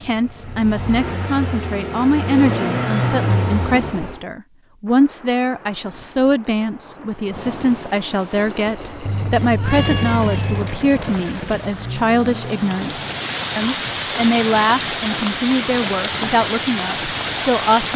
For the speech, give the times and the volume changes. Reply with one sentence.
You can hear the speech from 0.0 to 17.9 s, at a steady volume.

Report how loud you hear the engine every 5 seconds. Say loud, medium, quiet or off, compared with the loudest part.
loud, medium, medium, off.